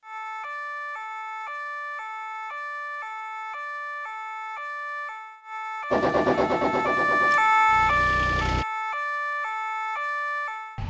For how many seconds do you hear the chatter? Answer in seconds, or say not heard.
not heard.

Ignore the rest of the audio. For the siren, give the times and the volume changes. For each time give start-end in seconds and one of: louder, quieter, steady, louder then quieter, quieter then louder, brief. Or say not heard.
0.0-10.8 louder then quieter.